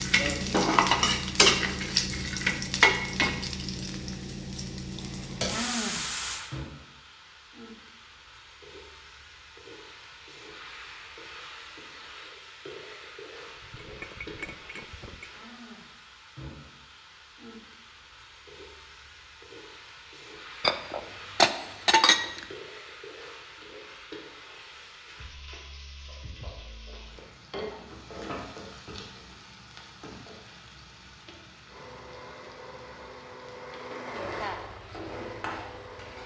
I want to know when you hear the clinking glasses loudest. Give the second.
22 s.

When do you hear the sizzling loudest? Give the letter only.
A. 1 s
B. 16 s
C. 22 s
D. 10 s
A.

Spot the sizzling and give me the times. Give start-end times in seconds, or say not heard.
0.0-36.2.